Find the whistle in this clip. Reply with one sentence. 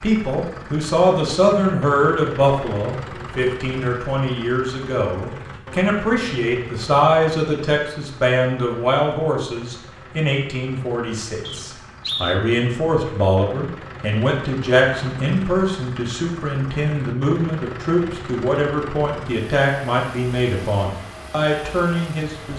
The whistle can be heard from 11.4 to 12.4 s.